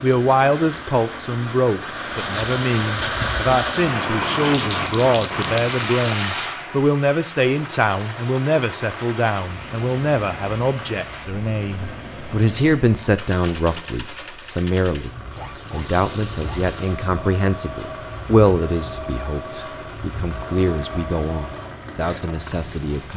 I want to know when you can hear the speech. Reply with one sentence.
You can hear the speech from 0.0 to 23.1 s.